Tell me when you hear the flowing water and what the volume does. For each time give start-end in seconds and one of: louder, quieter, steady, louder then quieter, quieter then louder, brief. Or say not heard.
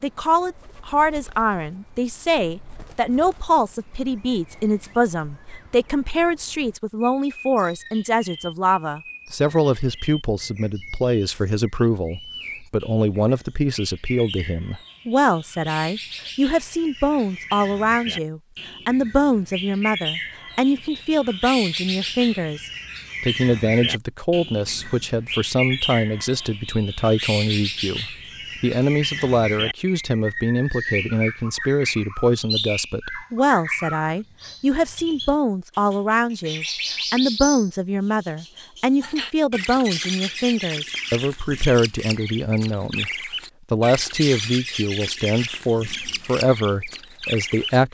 not heard.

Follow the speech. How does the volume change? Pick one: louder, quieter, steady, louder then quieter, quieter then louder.
steady.